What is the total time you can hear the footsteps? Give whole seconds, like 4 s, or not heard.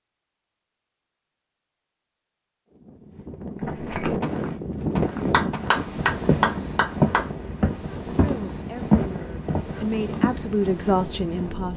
7 s.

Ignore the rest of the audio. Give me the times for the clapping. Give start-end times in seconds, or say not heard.
5.3-7.3.